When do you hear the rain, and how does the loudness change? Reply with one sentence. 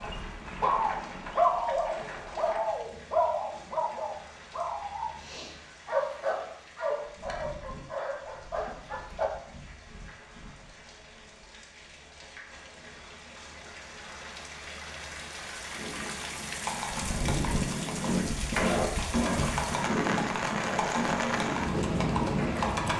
The rain can be heard from 0.0 to 22.9 s, getting louder.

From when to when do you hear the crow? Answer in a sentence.
You can't hear the crow here.